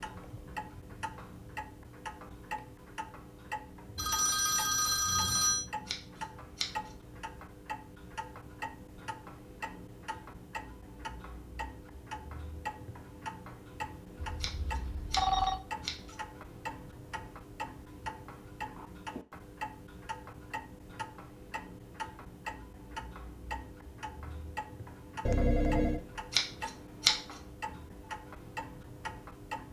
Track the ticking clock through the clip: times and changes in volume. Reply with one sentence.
The ticking clock can be heard from 0.0 to 29.6 s, at a steady volume.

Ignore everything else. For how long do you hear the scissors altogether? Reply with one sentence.
You can hear the scissors for 4 seconds altogether.